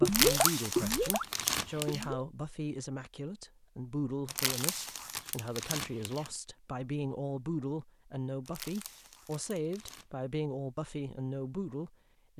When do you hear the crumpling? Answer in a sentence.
The crumpling can be heard from 0.1 to 2.0 s, from 4.2 to 6.3 s and from 8.4 to 10.1 s.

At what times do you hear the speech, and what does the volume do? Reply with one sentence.
You can hear the speech from 0.0 to 12.3 s, at a steady volume.